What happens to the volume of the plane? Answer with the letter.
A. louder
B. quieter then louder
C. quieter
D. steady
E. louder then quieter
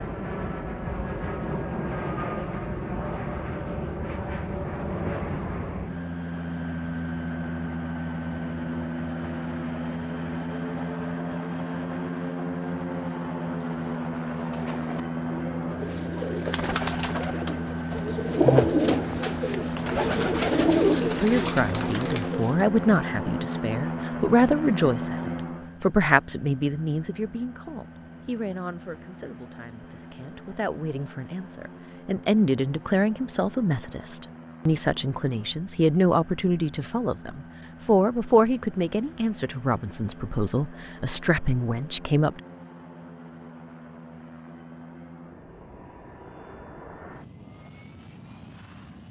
C.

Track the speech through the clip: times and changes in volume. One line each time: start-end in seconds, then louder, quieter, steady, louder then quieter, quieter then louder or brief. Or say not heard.
21.1-42.4 steady.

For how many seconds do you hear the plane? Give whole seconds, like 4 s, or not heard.
49 s.